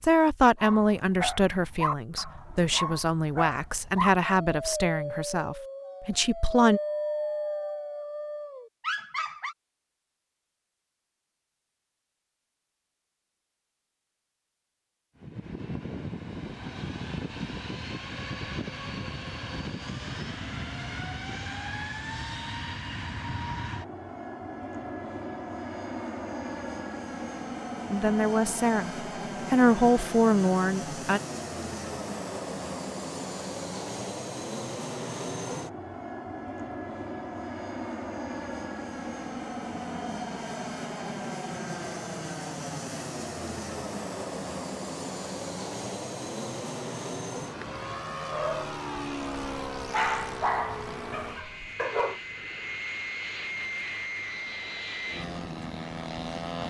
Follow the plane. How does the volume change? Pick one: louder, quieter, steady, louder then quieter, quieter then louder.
steady.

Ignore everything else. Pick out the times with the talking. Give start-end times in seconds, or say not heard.
0.0-6.8, 27.9-31.2.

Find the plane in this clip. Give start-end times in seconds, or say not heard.
15.2-56.6.